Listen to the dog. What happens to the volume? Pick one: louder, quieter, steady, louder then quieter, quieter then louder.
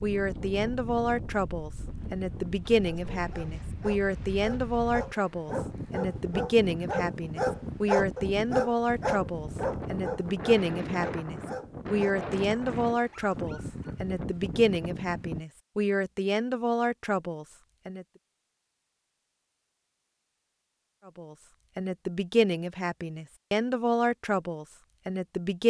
louder then quieter.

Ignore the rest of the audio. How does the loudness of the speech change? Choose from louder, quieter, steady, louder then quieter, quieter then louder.
steady.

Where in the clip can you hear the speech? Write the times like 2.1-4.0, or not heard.
0.0-18.1, 21.1-25.6.